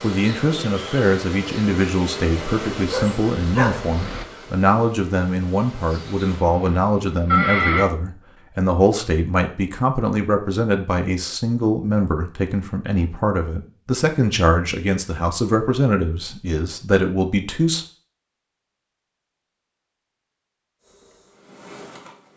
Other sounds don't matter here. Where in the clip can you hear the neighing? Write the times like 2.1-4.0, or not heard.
6.3-7.8.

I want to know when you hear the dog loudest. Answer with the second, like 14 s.
4 s.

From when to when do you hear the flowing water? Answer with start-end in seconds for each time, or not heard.
not heard.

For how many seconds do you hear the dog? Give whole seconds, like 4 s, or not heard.
2 s.